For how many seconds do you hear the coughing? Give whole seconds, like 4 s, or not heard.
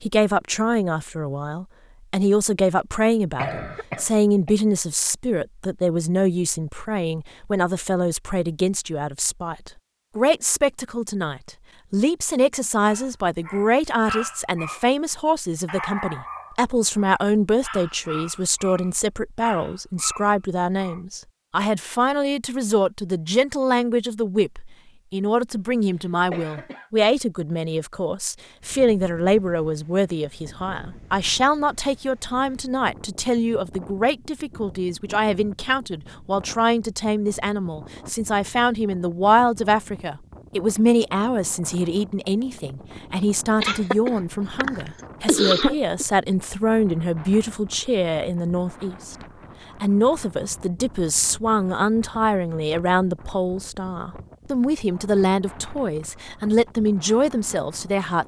4 s.